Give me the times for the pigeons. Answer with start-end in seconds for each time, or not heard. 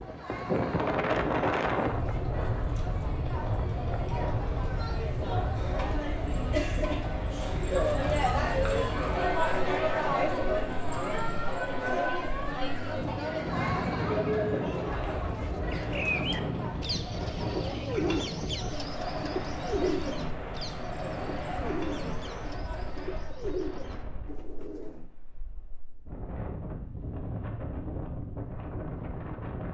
15.4-25.1.